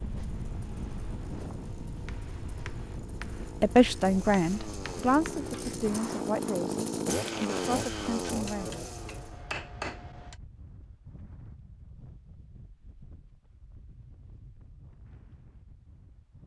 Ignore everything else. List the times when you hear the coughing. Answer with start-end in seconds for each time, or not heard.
not heard.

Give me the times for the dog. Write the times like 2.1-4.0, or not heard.
not heard.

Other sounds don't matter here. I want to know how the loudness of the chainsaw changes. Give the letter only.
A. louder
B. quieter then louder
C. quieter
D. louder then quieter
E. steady
A.